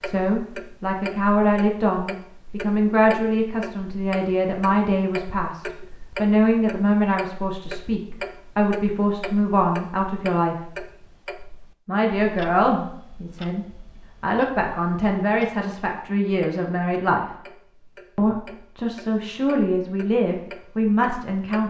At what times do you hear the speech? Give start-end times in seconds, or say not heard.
0.0-10.6, 11.8-17.3, 18.1-21.6.